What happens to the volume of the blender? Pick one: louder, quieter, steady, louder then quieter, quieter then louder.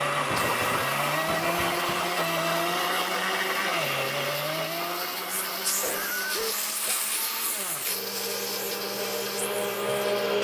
quieter then louder.